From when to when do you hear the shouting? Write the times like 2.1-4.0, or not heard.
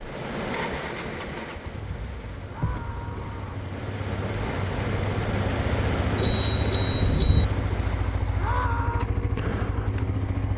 2.5-3.5, 8.3-9.1.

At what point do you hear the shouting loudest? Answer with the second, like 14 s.
9 s.